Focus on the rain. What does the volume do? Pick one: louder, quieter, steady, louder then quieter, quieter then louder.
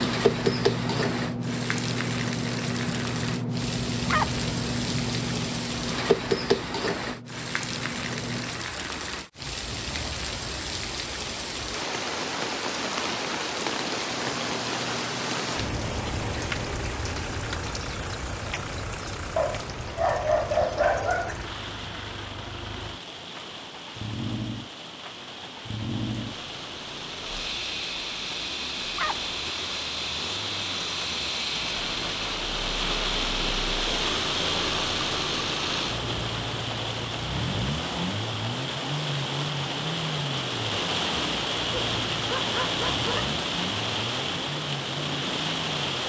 quieter then louder.